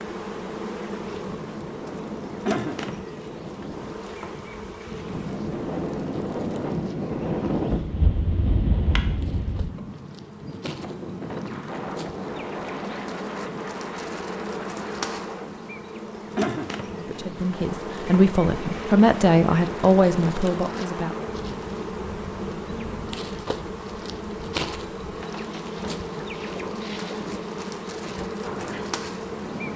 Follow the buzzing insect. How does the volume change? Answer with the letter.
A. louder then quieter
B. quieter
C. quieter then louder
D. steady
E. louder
C.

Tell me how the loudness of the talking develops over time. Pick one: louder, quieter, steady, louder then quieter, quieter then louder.
louder then quieter.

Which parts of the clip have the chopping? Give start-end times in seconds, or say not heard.
not heard.